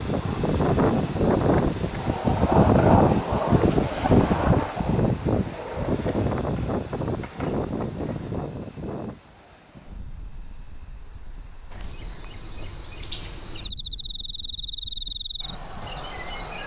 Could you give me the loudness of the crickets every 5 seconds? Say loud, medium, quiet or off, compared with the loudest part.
loud, medium, medium, loud.